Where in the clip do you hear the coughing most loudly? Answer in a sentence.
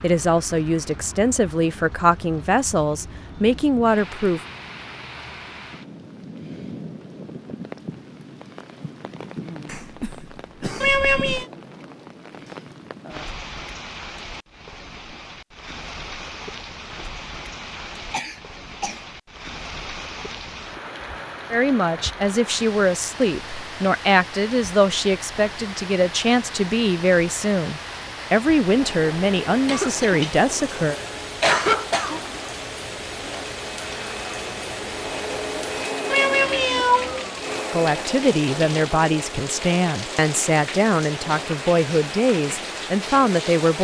The volume of the coughing peaks at 32 seconds.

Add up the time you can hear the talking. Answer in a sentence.
You can hear the talking for 20 seconds altogether.